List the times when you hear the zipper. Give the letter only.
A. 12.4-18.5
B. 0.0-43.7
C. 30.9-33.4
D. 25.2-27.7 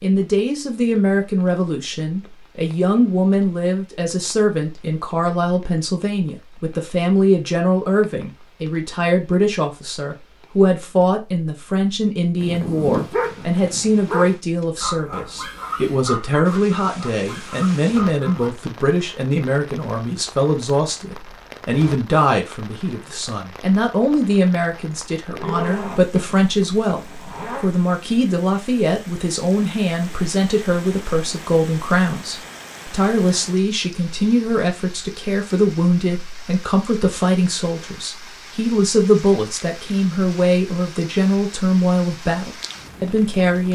D.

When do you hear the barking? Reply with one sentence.
The barking can be heard from 12.4 to 18.5 s.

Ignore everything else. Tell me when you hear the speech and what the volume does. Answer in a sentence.
The speech can be heard from 0.0 to 43.7 s, at a steady volume.